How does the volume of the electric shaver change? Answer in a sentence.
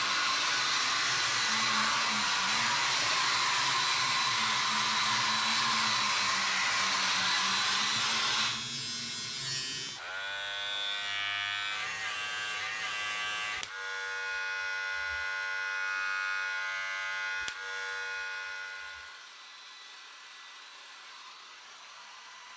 The loudness of the electric shaver stays about the same.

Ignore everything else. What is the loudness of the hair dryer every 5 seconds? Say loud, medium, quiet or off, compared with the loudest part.
loud, loud, quiet, quiet, quiet.